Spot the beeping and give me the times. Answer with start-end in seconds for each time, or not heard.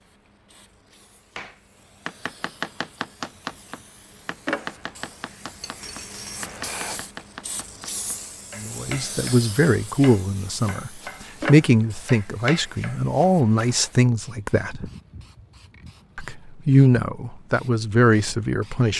not heard.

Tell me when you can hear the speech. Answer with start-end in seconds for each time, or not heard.
8.6-14.9, 16.1-18.9.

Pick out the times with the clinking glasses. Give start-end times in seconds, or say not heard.
5.6-6.5.